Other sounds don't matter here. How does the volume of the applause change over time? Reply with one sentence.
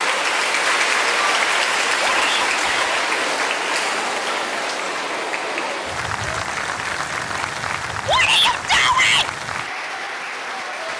The loudness of the applause goes down.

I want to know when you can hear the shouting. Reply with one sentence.
The shouting can be heard from 2.0 to 3.0 s and from 8.1 to 9.3 s.